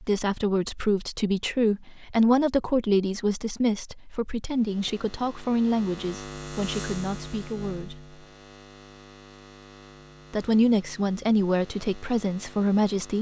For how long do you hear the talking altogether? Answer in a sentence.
You can hear the talking for 11 seconds altogether.